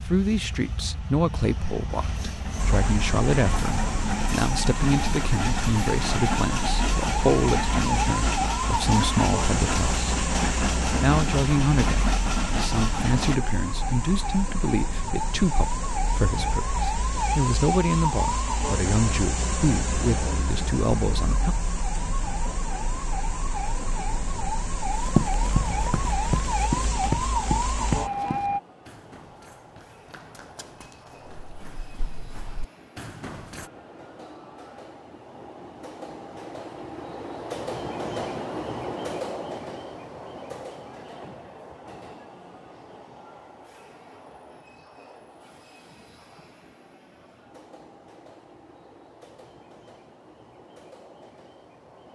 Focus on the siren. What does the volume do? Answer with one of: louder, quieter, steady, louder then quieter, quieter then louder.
steady.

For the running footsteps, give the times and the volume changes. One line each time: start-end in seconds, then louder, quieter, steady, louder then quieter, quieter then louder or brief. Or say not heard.
24.9-33.7 quieter then louder.